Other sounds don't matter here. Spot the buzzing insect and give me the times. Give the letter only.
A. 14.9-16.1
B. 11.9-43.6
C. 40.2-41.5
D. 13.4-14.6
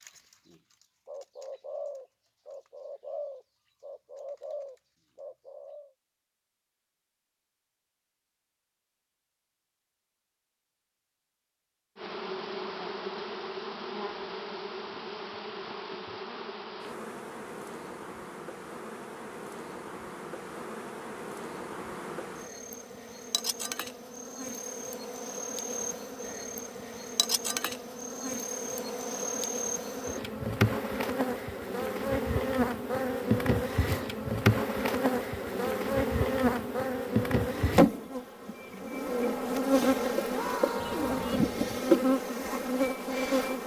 B.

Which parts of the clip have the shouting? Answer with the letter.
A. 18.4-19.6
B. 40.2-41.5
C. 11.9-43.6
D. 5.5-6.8
B.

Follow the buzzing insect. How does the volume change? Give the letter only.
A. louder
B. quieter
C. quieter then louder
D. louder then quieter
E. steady
A.